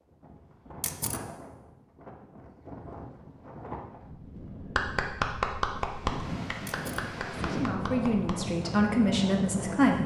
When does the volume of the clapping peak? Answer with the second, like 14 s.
5 s.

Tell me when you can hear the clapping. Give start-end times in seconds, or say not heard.
4.6-8.5.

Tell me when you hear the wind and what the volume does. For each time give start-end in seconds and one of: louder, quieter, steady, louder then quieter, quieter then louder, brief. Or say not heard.
0.0-10.0 louder.